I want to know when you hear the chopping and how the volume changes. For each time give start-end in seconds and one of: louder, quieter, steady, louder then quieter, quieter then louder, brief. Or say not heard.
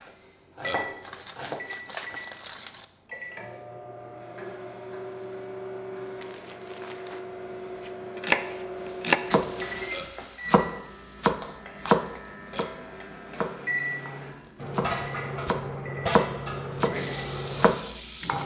0.0-2.1 brief
8.2-9.7 brief
10.4-18.4 quieter then louder.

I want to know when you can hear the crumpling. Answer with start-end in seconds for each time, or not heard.
1.0-2.9, 6.2-7.2, 14.2-15.7.